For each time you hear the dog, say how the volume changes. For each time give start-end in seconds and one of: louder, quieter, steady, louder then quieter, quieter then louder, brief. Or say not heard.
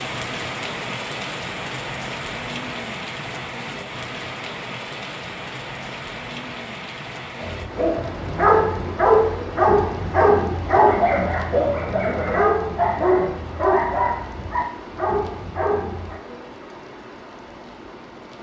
7.4-16.2 quieter.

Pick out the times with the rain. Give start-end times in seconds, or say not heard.
0.0-18.3.